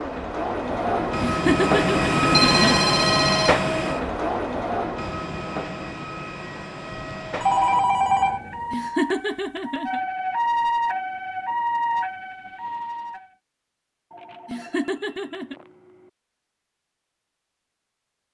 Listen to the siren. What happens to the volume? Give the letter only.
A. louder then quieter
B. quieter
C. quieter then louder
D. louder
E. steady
A.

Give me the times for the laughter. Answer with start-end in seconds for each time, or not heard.
1.2-2.8, 8.7-10.0, 14.4-15.6.